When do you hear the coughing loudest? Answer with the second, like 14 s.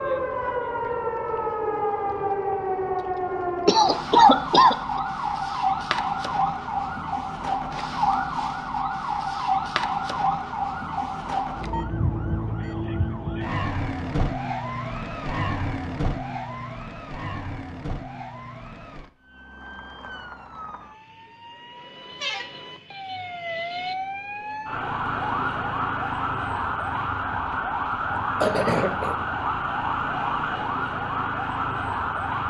4 s.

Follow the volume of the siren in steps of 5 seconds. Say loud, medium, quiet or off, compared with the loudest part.
loud, loud, loud, medium, medium, loud, loud.